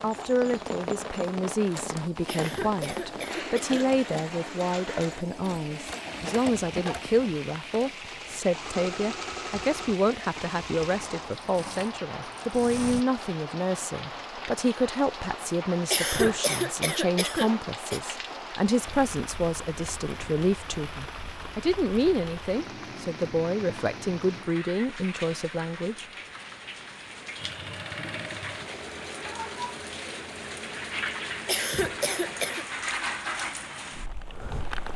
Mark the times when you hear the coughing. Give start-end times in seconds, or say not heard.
2.2-3.9, 15.9-18.0, 31.4-32.6.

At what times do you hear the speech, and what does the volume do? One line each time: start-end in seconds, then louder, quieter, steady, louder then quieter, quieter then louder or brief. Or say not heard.
0.0-26.1 steady.